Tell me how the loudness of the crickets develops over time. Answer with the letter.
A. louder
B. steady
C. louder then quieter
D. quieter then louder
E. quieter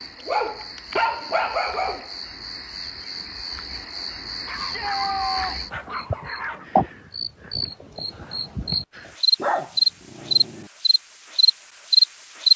A.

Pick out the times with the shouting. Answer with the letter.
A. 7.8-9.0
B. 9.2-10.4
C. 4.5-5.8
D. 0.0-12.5
C.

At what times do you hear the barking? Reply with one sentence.
The barking can be heard from 0.2 to 2.1 s, from 4.5 to 6.7 s and from 9.3 to 10.7 s.